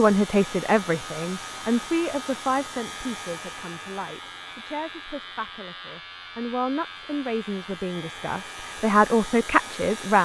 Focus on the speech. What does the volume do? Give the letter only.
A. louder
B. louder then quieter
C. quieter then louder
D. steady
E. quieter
C.